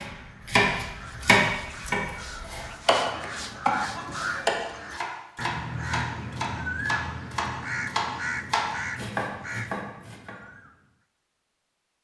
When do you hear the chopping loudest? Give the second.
1 s.